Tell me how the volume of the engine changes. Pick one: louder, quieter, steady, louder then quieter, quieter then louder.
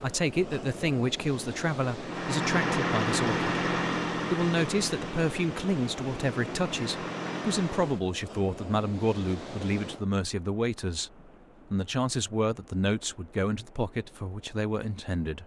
quieter then louder.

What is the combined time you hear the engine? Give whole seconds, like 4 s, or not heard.
6 s.